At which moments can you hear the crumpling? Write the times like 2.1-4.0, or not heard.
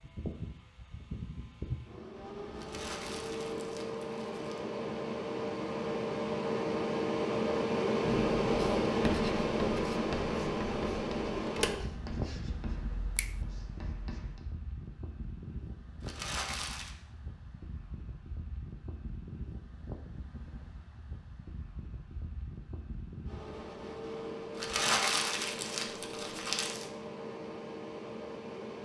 2.5-4.6, 16.0-16.9, 24.6-26.9.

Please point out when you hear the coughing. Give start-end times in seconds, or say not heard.
not heard.